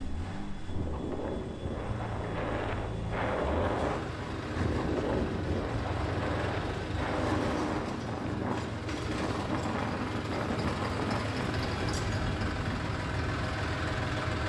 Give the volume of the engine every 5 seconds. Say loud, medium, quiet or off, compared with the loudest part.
medium, loud, loud.